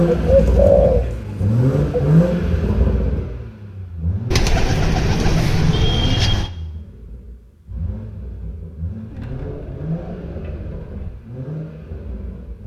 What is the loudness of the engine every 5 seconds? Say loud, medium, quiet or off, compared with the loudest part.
loud, quiet, quiet.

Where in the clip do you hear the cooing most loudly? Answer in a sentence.
The loudest moment of the cooing is at 1 second.